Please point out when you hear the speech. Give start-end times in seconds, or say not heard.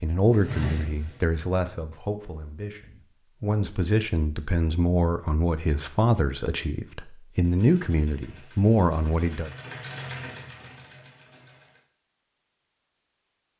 0.0-9.5.